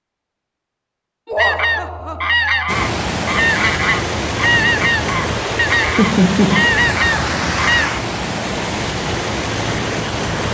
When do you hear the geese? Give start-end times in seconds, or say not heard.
1.4-7.9.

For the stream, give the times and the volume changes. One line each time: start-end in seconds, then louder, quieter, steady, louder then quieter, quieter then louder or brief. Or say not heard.
2.6-10.4 steady.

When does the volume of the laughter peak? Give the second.
6 s.